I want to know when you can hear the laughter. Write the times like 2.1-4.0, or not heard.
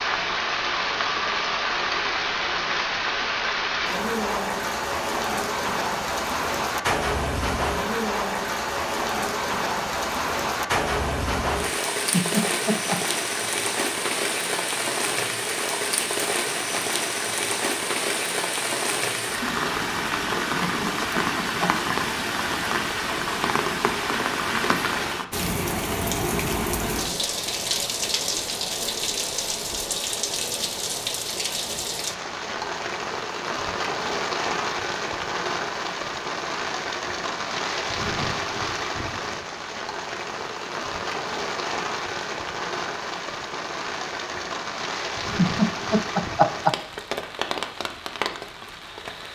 12.1-13.0, 20.6-21.7, 45.4-46.8.